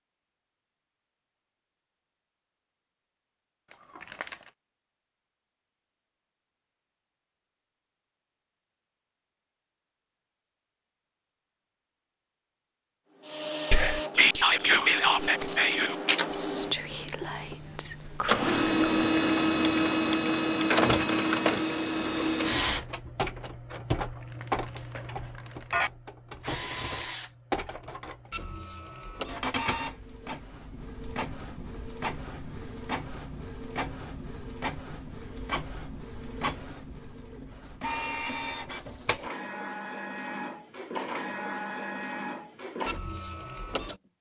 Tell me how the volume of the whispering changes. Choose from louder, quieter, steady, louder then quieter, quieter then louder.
quieter.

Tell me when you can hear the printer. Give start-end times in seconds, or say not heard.
13.2-44.0.